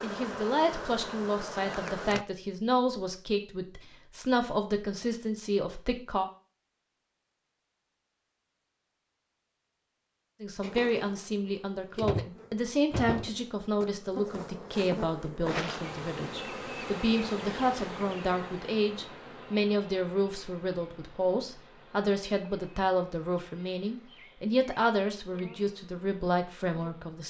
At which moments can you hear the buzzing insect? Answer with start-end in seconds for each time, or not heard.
0.0-2.2, 10.6-27.2.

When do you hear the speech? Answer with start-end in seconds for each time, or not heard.
0.0-6.2, 10.4-27.2.